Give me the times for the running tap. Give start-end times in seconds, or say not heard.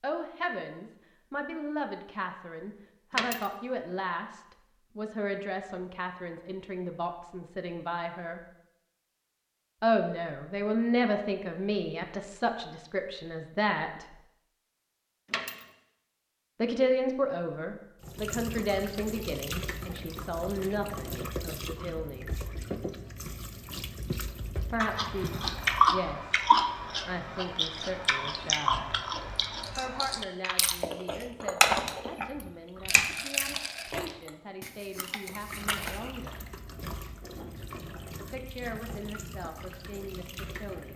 18.0-26.0, 35.3-40.9.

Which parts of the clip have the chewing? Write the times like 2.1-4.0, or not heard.
24.8-36.1.